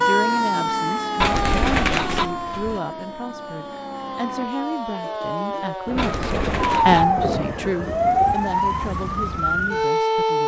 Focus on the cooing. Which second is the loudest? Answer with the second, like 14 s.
2 s.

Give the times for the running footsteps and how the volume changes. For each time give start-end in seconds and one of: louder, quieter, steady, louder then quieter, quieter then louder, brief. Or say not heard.
not heard.